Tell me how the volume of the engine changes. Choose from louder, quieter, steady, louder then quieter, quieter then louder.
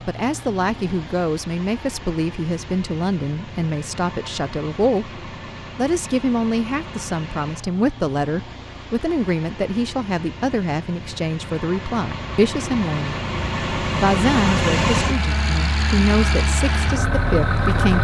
louder.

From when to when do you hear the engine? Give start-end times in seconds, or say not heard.
0.0-17.9.